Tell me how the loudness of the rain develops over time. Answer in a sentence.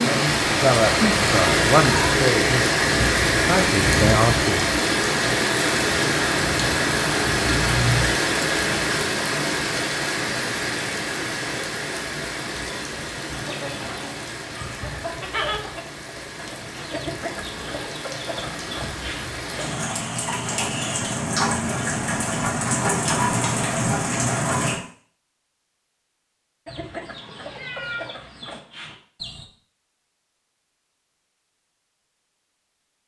The volume of the rain goes down, then up.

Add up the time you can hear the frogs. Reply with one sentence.
The frogs can't be heard in this clip.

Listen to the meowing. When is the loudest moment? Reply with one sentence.
The volume of the meowing peaks at 8 seconds.